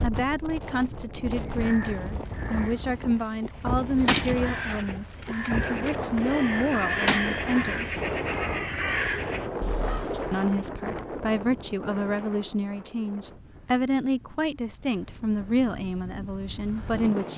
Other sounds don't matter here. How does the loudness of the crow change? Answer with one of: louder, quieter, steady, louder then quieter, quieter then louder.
louder.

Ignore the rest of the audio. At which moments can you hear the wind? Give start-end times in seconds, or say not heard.
0.0-17.3.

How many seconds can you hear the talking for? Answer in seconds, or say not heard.
15 s.